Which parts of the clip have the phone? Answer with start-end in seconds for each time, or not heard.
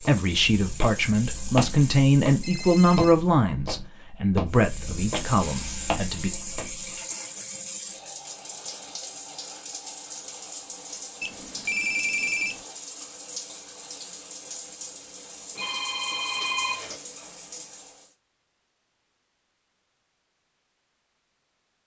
2.4-3.1, 11.2-12.6, 15.6-17.0.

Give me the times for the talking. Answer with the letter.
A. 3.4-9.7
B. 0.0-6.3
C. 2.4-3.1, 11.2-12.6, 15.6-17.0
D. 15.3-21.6
B.